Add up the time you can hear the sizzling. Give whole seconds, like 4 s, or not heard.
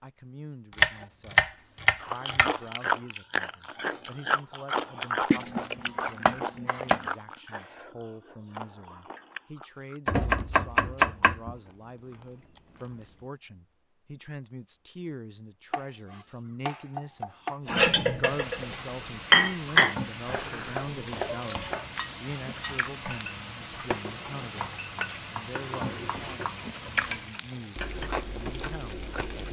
11 s.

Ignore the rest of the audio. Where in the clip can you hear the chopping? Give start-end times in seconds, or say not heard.
0.7-2.5, 5.3-7.0, 10.1-11.6, 15.7-17.6, 20.3-21.9, 24.6-26.6.